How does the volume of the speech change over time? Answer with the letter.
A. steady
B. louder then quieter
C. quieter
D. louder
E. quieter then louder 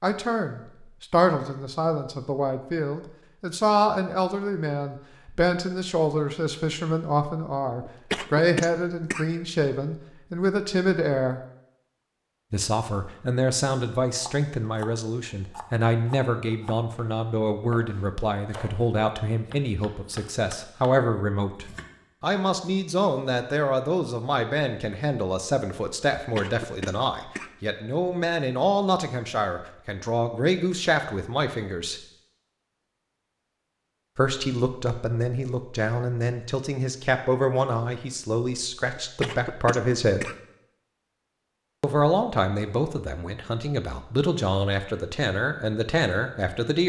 A.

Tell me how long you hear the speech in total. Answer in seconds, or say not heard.
42 s.